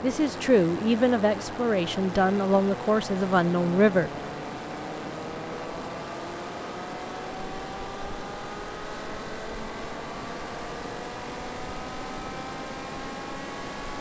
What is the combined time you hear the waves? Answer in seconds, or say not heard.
14 s.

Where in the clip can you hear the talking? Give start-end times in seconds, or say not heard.
0.0-4.1.